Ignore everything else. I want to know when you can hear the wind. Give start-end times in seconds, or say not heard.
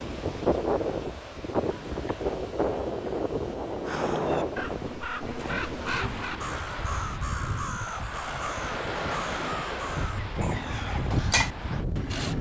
0.0-12.3.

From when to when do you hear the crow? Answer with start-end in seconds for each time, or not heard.
3.9-11.8.